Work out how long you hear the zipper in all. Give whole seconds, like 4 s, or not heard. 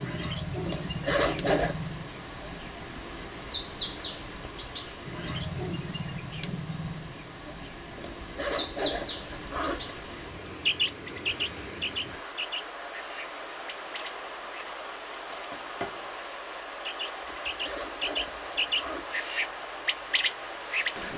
5 s.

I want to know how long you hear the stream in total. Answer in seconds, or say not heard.
21 s.